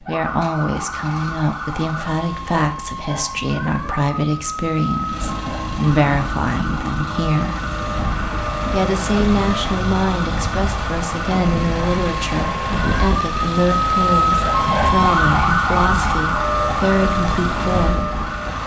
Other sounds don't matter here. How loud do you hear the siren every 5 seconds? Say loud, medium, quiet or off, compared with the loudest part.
medium, medium, loud, loud.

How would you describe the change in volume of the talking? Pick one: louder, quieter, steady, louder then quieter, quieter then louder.
steady.